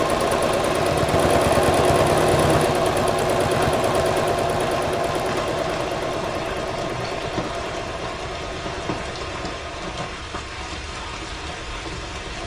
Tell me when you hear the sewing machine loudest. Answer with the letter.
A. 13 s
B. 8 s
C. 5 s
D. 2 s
D.